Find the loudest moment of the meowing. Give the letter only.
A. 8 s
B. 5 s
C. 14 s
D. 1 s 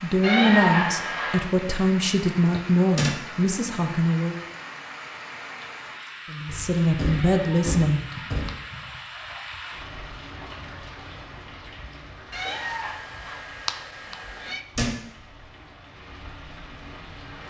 D.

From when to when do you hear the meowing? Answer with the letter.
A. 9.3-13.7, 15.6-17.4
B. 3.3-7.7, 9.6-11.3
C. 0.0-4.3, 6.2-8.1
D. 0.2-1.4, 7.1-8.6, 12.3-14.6
D.